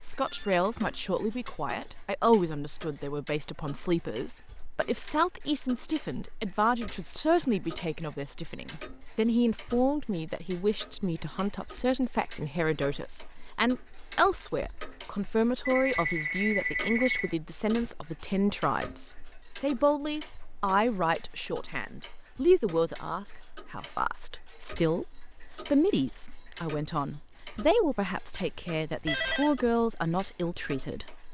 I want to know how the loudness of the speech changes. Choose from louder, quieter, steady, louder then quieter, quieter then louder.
steady.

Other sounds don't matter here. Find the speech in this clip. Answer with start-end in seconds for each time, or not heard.
0.0-31.3.